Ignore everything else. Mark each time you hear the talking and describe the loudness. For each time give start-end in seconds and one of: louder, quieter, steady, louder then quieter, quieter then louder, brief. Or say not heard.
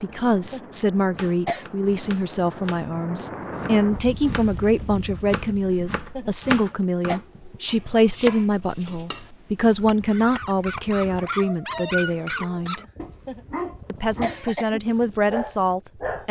0.0-12.8 steady
13.8-16.2 brief.